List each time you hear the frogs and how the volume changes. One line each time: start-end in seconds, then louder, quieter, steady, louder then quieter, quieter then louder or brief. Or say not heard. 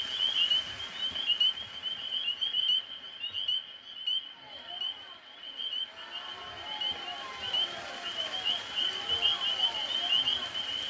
0.0-10.8 quieter then louder.